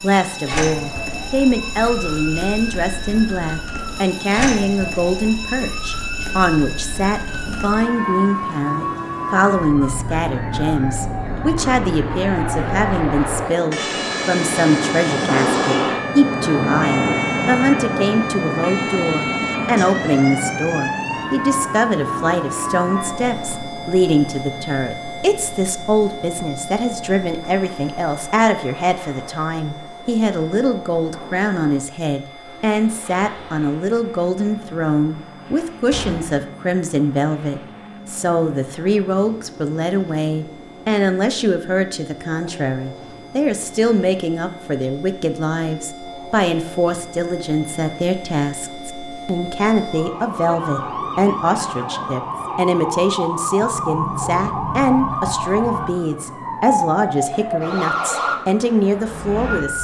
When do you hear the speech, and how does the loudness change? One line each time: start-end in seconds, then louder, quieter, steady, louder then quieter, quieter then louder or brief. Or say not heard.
0.0-59.7 steady.